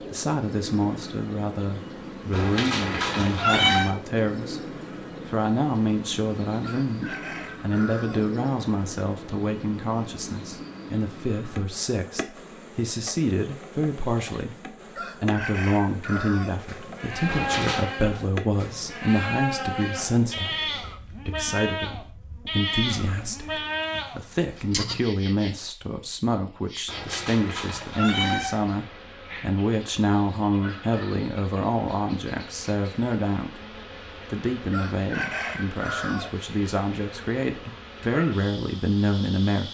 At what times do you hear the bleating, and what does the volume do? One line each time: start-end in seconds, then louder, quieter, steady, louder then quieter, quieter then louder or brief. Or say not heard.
16.5-25.0 steady.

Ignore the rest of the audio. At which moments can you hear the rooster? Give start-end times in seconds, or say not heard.
6.6-8.2, 14.9-16.6, 34.7-36.4.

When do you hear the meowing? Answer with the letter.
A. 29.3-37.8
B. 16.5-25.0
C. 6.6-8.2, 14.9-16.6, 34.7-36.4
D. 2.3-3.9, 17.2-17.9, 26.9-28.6
D.